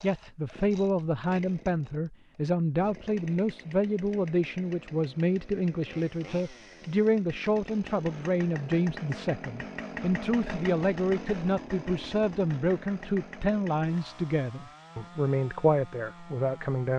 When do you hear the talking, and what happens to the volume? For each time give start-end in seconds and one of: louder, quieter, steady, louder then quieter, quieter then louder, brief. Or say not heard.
0.0-16.9 steady.